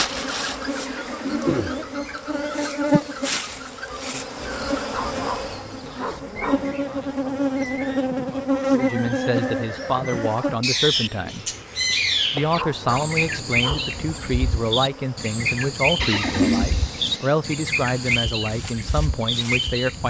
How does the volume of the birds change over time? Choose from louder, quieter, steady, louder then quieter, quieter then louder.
louder.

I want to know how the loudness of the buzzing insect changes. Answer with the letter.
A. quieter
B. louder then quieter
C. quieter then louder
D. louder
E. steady
A.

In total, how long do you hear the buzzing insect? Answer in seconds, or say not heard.
20 s.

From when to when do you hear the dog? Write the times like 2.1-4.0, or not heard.
4.9-6.7, 12.5-14.0.